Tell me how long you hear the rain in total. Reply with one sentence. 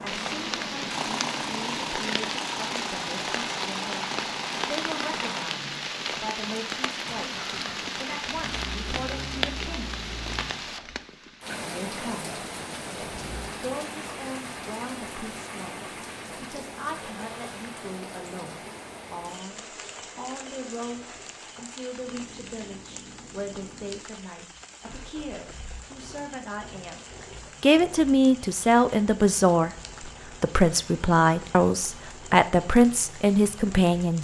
The rain can be heard for 34 seconds in total.